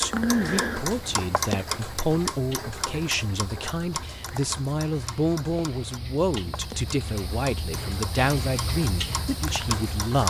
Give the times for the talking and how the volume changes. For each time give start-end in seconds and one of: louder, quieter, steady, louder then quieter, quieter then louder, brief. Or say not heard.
0.0-10.2 steady.